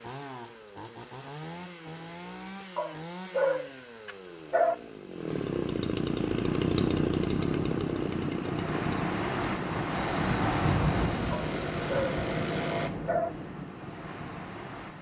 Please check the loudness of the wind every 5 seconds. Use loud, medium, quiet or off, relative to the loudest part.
off, loud, loud.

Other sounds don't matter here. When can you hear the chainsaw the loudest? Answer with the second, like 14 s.
7 s.